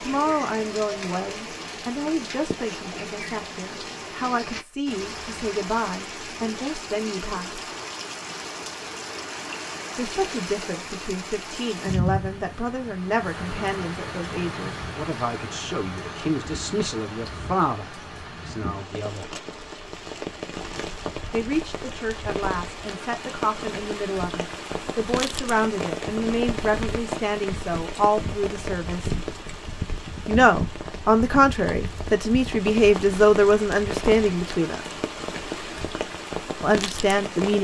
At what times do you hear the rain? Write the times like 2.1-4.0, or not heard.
0.0-37.6.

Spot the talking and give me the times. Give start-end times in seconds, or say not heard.
0.0-7.7, 9.9-19.3, 21.3-29.1, 30.2-34.8, 36.6-37.6.